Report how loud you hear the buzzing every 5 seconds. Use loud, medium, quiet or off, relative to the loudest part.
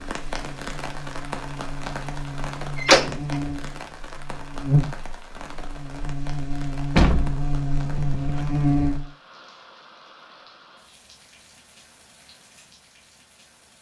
loud, loud, off.